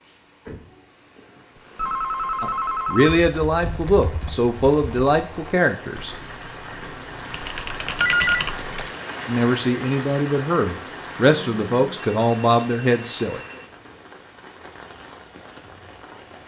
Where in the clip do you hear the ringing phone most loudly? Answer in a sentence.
The volume of the ringing phone peaks at 8 seconds.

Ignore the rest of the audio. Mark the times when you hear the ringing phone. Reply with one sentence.
The ringing phone can be heard from 1.6 to 3.2 s, from 8.0 to 8.9 s and from 11.2 to 13.8 s.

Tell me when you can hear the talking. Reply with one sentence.
The talking can be heard from 2.4 to 6.2 s and from 9.2 to 13.4 s.